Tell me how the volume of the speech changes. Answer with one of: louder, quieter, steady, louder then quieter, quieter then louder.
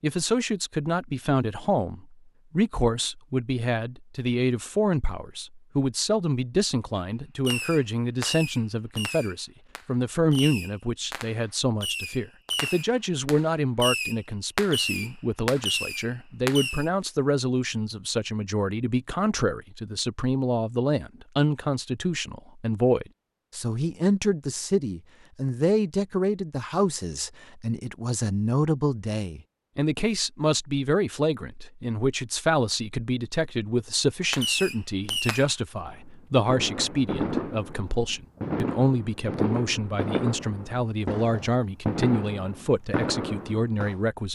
steady.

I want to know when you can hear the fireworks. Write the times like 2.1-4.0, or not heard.
7.5-16.9, 34.3-44.0.